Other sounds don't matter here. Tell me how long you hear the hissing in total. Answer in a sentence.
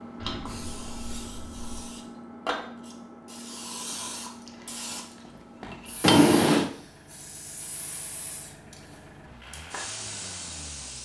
The hissing can be heard for 11 seconds in total.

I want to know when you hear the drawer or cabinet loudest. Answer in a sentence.
The loudest moment of the drawer or cabinet is at 6 seconds.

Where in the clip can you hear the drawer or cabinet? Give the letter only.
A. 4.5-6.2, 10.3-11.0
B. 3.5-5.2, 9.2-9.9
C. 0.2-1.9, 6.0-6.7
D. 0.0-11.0
C.